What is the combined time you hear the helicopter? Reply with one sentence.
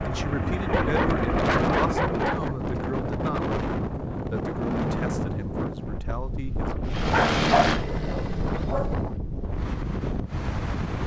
The helicopter can be heard for 5 seconds in total.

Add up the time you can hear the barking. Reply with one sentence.
The barking can be heard for 4 seconds in total.